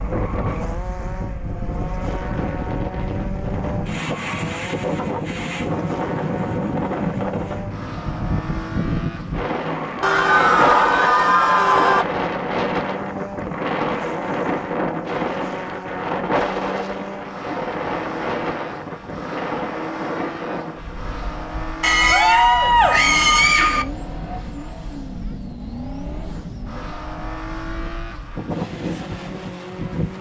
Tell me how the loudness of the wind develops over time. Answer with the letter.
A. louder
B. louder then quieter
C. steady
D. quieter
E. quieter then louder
D.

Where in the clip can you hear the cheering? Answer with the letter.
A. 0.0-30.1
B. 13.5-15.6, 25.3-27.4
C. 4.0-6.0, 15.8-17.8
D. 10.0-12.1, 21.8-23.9
D.